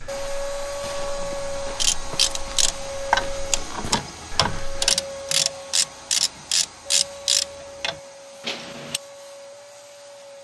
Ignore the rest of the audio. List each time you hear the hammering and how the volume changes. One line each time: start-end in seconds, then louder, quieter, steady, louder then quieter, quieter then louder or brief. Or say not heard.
not heard.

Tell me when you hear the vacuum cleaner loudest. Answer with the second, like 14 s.
1 s.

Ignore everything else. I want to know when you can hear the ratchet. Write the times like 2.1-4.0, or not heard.
1.8-9.0.